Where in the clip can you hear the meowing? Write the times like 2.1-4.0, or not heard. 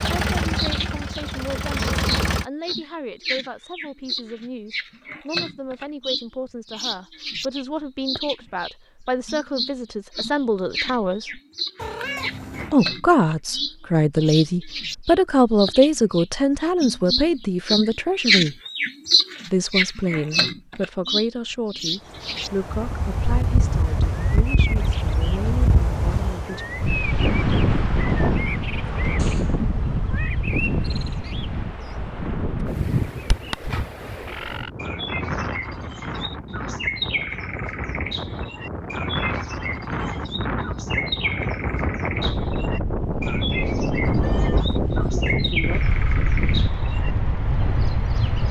11.8-12.8, 29.1-30.3, 44.0-44.7.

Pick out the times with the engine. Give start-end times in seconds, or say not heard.
0.0-2.5.